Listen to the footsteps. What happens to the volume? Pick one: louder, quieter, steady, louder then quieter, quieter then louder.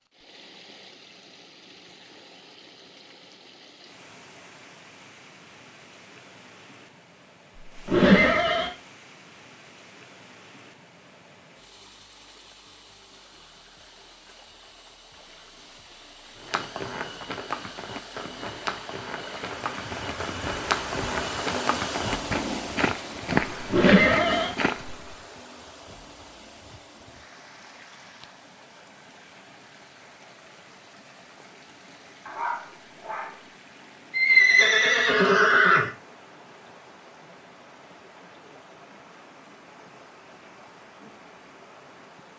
louder.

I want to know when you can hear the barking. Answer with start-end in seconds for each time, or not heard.
32.2-33.5.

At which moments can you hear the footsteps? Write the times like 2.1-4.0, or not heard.
16.4-24.9.